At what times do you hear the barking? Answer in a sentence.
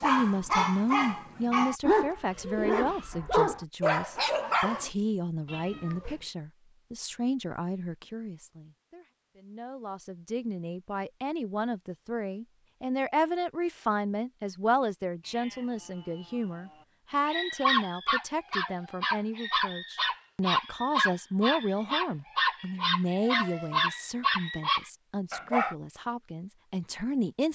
You can hear the barking from 0.0 to 4.9 s and from 17.2 to 25.8 s.